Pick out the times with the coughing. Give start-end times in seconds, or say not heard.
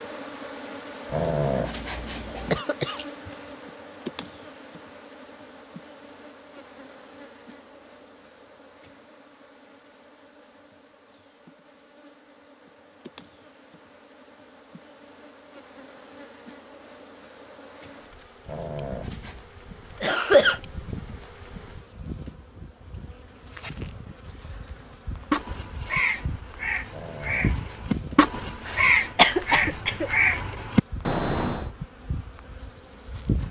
2.5-3.4, 20.0-20.6, 28.6-30.1.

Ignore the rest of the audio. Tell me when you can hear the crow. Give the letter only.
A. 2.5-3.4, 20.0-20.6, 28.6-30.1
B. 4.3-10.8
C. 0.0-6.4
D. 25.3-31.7
D.